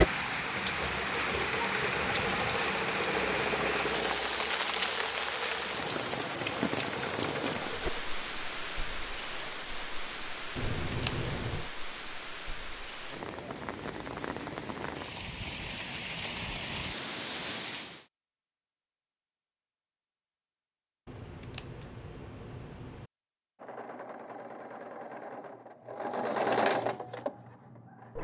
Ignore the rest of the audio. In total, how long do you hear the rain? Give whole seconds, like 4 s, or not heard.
18 s.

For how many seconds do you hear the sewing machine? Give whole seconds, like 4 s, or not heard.
13 s.